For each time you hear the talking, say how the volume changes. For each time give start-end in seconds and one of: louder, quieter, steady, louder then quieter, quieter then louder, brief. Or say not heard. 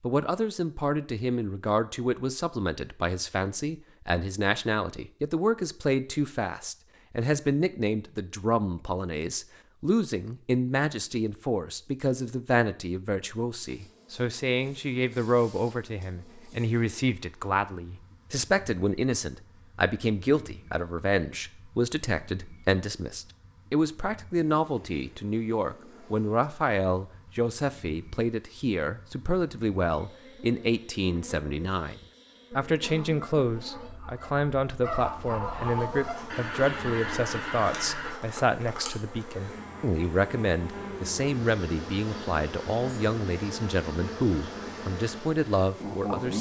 0.0-46.3 steady.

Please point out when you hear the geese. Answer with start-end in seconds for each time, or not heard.
32.8-38.1.